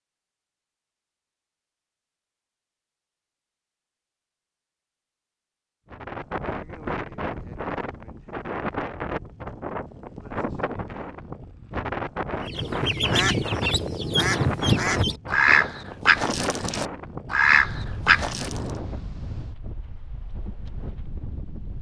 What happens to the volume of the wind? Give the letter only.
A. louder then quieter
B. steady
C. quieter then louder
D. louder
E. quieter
E.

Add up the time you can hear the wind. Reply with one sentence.
You can hear the wind for 16 seconds altogether.